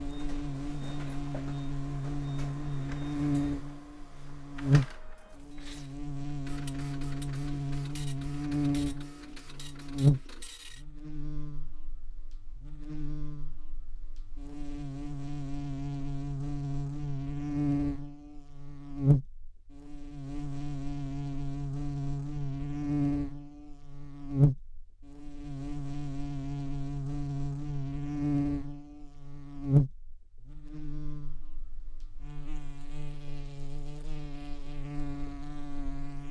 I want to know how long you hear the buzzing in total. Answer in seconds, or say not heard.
36 s.